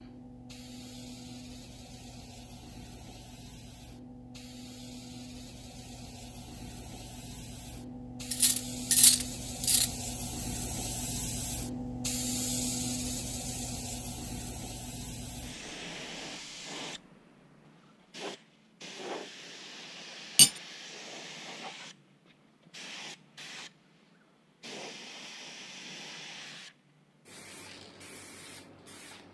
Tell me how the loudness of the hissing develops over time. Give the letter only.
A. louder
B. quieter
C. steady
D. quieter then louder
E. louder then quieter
E.